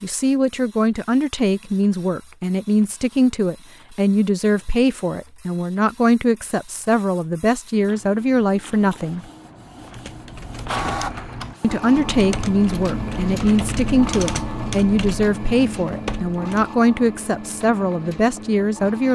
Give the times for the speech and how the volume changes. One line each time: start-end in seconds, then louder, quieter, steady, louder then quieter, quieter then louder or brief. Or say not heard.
0.0-9.2 steady
11.6-19.1 steady.